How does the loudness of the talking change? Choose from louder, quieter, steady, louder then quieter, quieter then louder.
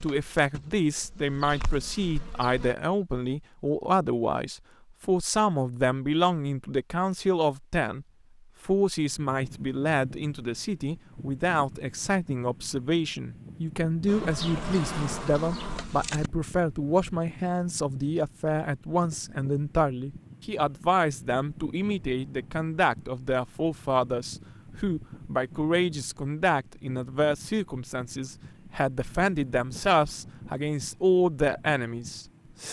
steady.